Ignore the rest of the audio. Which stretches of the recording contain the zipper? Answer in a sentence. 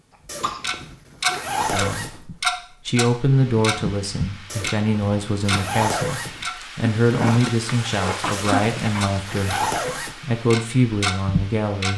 You can hear the zipper from 0.2 to 2.2 s, from 4.5 to 6.5 s and from 8.3 to 10.2 s.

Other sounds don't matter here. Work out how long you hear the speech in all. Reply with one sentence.
The speech can be heard for 10 seconds in total.